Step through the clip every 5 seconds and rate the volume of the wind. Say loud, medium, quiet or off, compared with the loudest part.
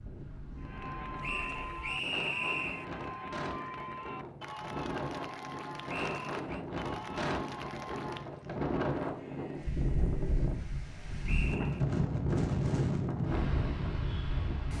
medium, loud, loud.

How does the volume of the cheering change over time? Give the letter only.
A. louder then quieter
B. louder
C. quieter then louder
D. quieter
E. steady
D.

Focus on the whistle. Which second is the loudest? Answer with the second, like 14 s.
2 s.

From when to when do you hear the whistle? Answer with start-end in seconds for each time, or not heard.
1.2-2.9, 5.8-6.7, 11.2-11.8.